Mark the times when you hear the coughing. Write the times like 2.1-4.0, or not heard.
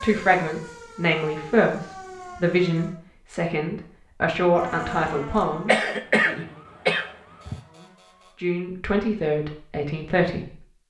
5.7-7.5.